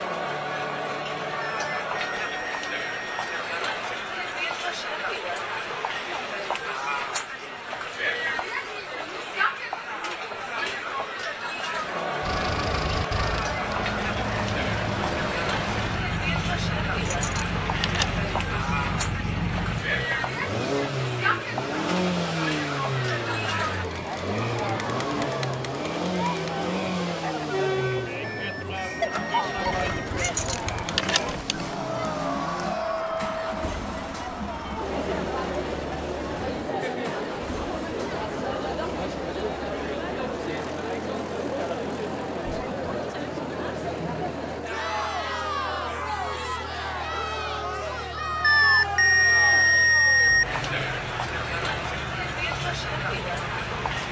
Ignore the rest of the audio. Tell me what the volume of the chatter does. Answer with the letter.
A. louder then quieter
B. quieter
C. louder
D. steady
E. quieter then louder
D.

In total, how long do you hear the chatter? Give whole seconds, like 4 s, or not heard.
54 s.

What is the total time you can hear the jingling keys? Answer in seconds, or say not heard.
3 s.